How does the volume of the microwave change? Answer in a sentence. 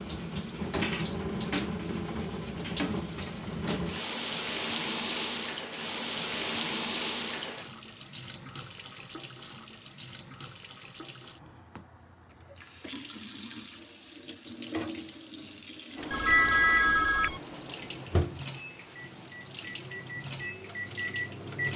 The loudness of the microwave goes down, then up.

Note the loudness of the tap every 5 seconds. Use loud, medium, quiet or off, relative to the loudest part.
loud, loud, medium, medium, medium.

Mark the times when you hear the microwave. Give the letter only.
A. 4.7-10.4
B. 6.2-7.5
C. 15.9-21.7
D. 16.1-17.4
C.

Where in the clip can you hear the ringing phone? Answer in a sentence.
You can hear the ringing phone from 16.1 to 17.4 s.